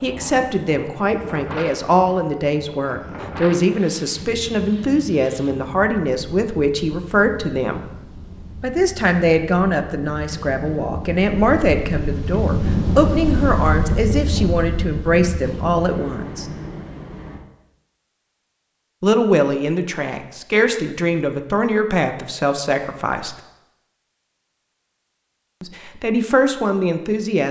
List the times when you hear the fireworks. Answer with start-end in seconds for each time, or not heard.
not heard.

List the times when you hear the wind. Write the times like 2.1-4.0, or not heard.
0.0-17.4.